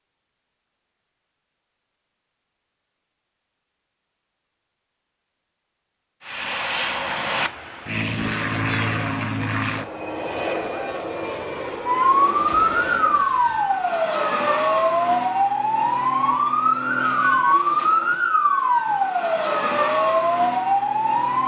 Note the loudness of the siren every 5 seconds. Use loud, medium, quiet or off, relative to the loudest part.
off, off, loud, loud, loud.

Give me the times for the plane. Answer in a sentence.
You can hear the plane from 6.2 to 13.3 s.